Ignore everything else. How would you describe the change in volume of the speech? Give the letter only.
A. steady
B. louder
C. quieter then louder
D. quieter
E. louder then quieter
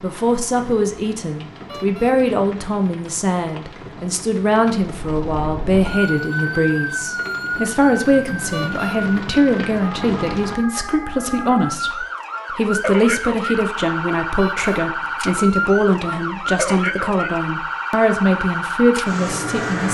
A.